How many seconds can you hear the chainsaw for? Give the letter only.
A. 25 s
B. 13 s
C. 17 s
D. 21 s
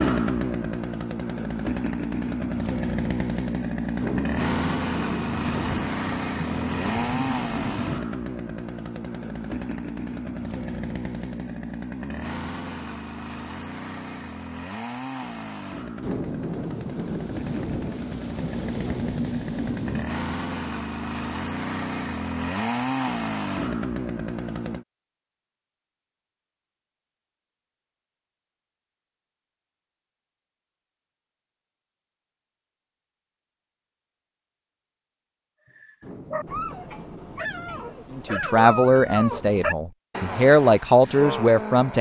A.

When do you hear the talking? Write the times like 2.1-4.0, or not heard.
38.1-41.9.